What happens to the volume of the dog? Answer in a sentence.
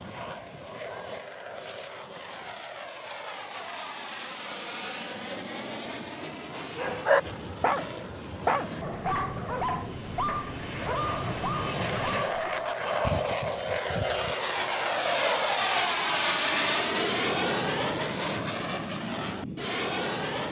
The loudness of the dog goes down.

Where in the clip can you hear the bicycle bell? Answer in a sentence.
The bicycle bell can't be heard in this clip.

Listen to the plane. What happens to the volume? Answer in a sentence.
The volume of the plane goes up.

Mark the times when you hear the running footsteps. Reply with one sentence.
The running footsteps can't be heard in this clip.